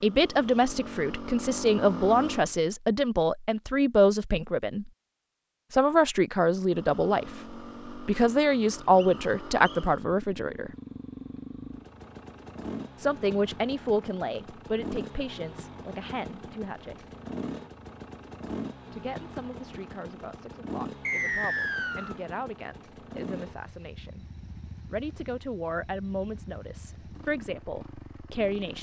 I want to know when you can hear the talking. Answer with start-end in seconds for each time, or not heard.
0.0-4.9, 5.7-10.7, 13.0-17.1, 18.9-24.2, 24.9-28.7.